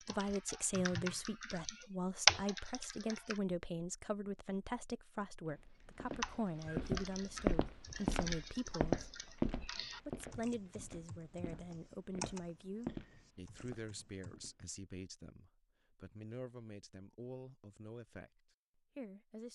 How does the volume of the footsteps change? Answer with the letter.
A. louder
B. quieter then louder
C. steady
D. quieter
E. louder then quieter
B.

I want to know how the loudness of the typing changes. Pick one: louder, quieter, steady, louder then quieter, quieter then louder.
quieter.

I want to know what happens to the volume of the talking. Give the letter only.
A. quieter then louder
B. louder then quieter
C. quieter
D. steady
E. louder
C.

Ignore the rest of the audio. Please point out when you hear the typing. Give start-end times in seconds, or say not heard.
0.0-3.4, 6.2-14.3.